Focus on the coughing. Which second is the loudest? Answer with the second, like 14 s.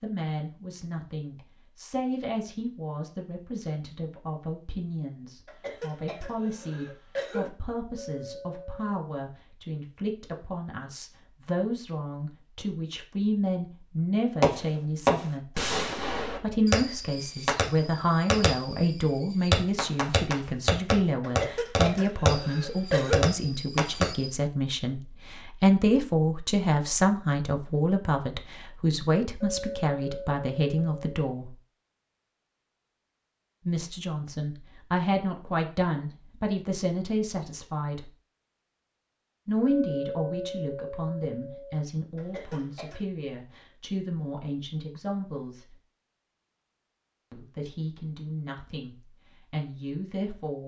23 s.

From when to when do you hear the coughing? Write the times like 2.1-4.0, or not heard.
5.5-7.5, 21.2-23.2, 42.1-43.0.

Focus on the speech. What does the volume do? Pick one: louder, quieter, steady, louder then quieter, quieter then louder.
louder then quieter.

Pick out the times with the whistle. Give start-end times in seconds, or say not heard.
not heard.